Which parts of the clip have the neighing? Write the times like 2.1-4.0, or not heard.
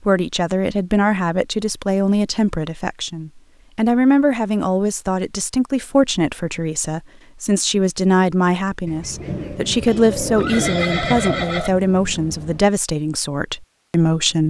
9.8-11.7.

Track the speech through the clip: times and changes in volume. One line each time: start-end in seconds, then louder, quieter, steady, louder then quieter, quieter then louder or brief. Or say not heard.
0.0-14.4 steady.